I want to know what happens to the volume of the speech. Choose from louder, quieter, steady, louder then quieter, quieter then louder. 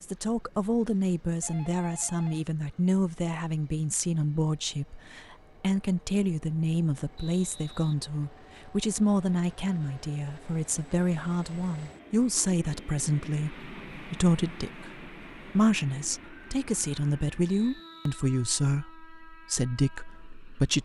steady.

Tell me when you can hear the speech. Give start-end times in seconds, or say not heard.
0.0-20.7.